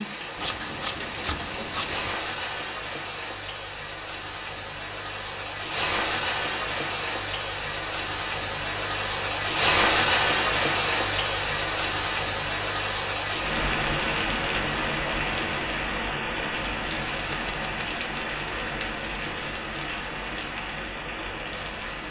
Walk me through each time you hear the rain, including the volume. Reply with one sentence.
You can hear the rain from 0.0 to 22.0 s, getting louder then quieter.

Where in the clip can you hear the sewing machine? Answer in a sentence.
You can't hear the sewing machine here.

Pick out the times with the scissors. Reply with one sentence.
The scissors can be heard from 0.3 to 2.2 s and from 17.3 to 18.0 s.